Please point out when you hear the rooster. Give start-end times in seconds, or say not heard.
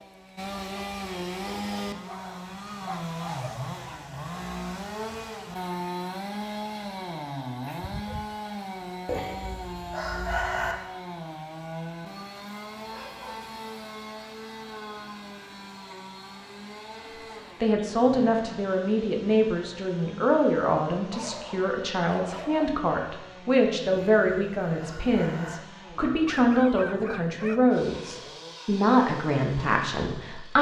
9.1-10.8, 23.9-25.6.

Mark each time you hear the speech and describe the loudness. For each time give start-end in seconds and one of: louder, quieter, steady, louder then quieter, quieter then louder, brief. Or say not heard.
17.6-30.5 steady.